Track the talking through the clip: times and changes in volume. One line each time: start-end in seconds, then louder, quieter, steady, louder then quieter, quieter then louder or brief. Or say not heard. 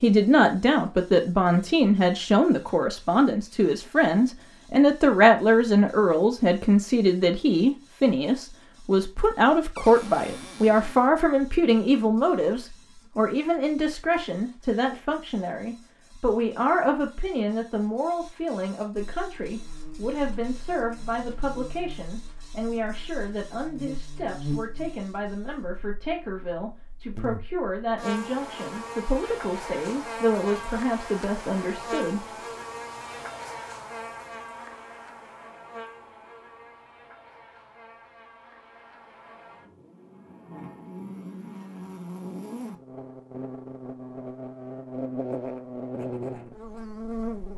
0.0-32.2 quieter.